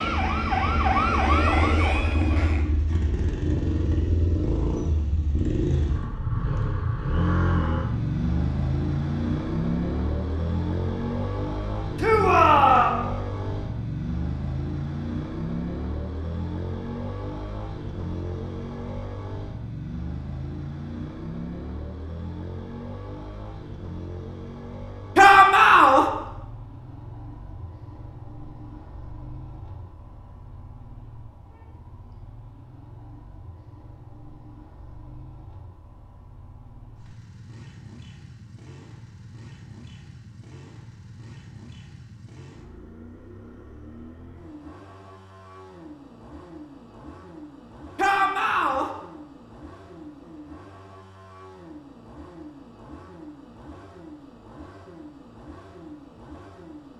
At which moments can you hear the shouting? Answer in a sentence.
You can hear the shouting from 11.9 to 12.9 s, from 25.1 to 26.1 s and from 48.0 to 48.9 s.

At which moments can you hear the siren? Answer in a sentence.
The siren can be heard from 0.0 to 2.7 s.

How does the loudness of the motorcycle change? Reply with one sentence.
The volume of the motorcycle goes down.